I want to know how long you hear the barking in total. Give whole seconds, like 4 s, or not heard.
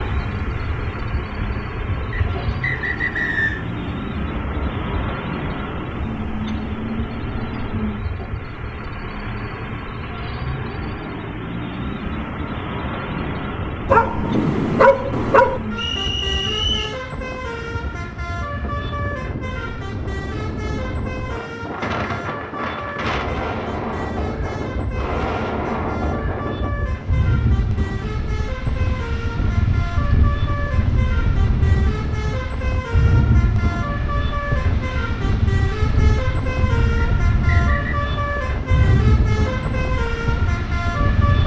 2 s.